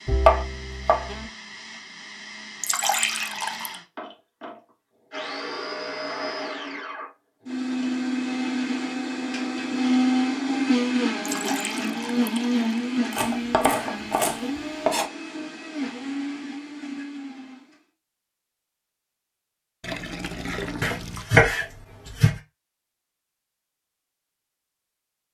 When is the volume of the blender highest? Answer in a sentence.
The volume of the blender peaks at 10 seconds.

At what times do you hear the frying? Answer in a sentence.
The frying can't be heard in this clip.